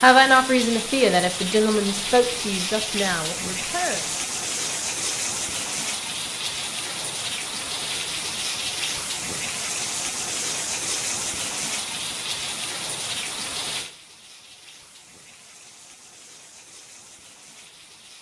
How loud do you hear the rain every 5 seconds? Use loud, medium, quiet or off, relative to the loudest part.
loud, loud, loud, quiet.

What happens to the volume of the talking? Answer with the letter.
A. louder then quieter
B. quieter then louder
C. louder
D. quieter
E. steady
D.